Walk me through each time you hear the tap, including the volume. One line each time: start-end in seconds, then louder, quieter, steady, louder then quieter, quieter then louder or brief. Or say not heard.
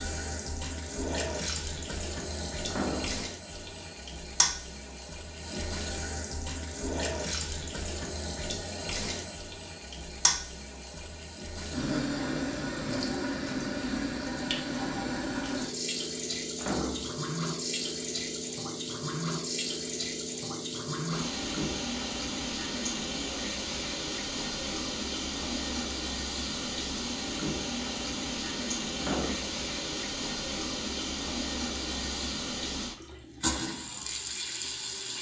0.0-35.1 steady.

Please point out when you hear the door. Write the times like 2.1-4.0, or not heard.
2.6-3.2, 16.6-17.2, 28.9-29.6.